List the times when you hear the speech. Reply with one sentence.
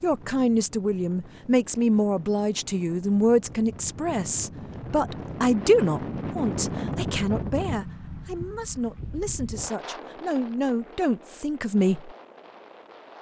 You can hear the speech from 0.0 to 12.1 s.